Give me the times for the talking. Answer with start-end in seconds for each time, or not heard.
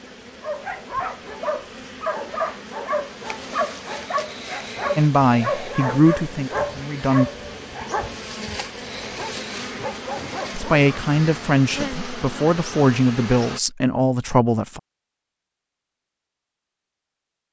5.0-7.3, 10.5-14.8.